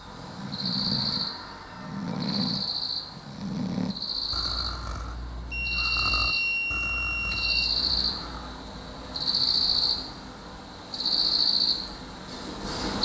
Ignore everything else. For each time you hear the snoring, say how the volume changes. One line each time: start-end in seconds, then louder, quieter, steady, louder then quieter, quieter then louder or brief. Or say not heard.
0.1-8.6 quieter.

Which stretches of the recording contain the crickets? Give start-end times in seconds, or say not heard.
0.0-12.9.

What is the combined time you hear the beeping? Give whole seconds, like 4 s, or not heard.
2 s.